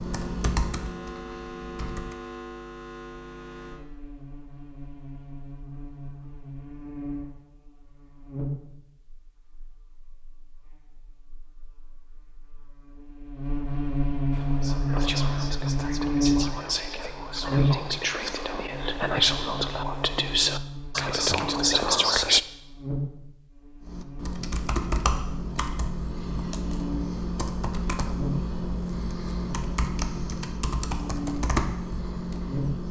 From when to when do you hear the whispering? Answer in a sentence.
You can hear the whispering from 14.3 to 22.4 s.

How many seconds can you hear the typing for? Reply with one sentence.
You can hear the typing for 11 seconds altogether.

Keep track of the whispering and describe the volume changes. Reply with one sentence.
The volume of the whispering goes up.